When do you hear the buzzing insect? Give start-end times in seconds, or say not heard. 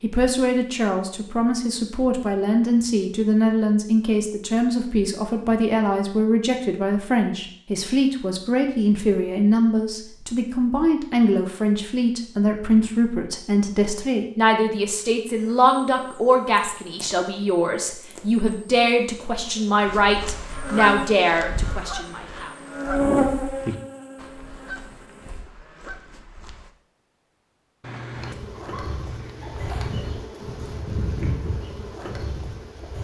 15.7-24.9, 28.1-32.9.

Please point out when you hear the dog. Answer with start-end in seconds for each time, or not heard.
27.8-30.1.